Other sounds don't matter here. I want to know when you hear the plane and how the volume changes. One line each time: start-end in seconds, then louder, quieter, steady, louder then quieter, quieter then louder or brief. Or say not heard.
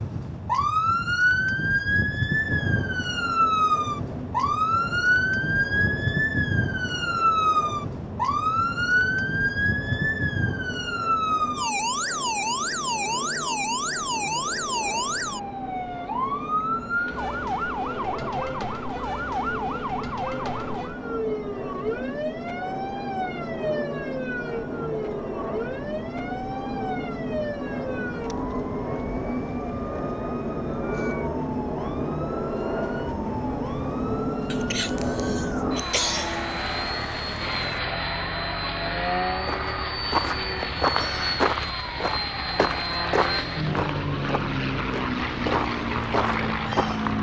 2.2-47.1 louder.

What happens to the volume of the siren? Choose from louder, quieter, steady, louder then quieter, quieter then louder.
quieter.